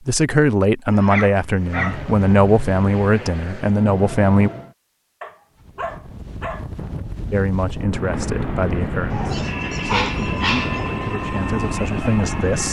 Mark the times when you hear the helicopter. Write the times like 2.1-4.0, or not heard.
1.6-4.8, 7.8-12.6.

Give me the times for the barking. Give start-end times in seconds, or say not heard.
0.8-2.1, 5.2-6.7, 9.1-10.8.